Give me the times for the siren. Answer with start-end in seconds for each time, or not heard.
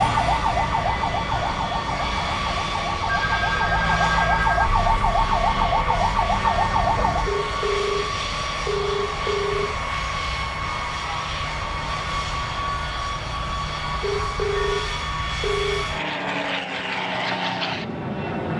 0.0-7.3.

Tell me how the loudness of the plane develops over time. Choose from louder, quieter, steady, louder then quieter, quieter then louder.
steady.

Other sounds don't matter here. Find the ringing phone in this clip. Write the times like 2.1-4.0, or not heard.
3.1-4.7, 7.2-9.8, 14.0-15.8.